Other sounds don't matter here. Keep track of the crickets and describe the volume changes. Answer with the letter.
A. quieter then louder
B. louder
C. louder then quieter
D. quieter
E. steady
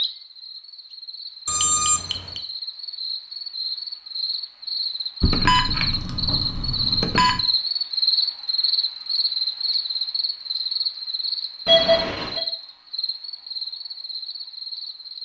C.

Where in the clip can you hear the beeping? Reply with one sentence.
You can hear the beeping from 1.4 to 2.4 s, from 5.2 to 7.4 s and from 11.7 to 12.4 s.